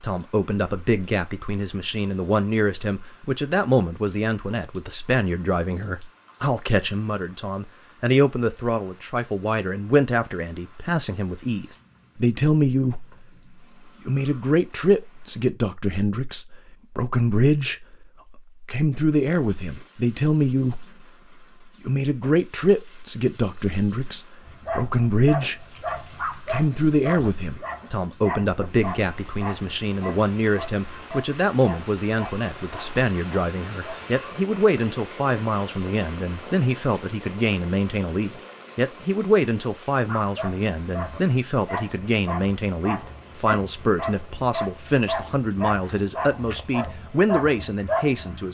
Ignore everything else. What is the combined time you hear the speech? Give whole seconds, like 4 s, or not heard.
45 s.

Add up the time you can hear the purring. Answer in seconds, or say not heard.
not heard.